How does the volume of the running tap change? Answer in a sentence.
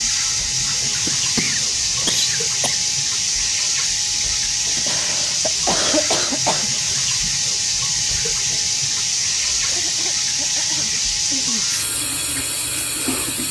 The loudness of the running tap stays about the same.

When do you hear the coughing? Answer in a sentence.
You can hear the coughing from 0.9 to 2.8 s, from 4.8 to 6.8 s and from 9.7 to 11.7 s.